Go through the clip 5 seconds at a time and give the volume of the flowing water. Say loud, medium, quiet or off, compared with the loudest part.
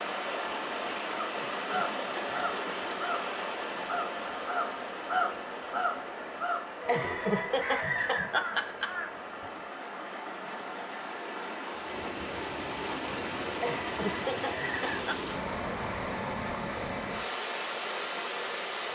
loud, medium, loud, loud.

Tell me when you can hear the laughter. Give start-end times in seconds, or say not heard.
1.2-2.4, 6.8-8.9, 13.6-15.3.